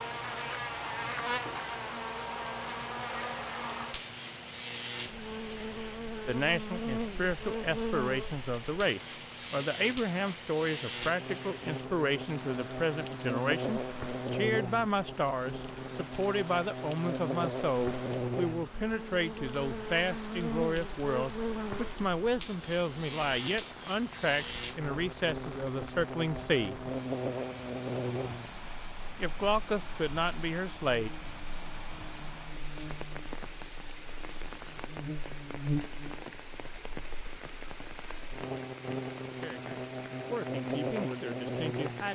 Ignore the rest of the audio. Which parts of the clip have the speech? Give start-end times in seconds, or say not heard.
6.2-26.8, 29.1-31.1, 39.2-42.1.